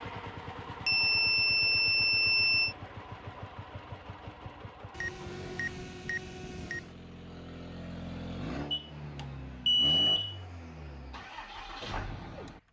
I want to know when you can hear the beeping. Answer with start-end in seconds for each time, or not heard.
0.8-2.8, 4.9-6.9, 8.7-10.3.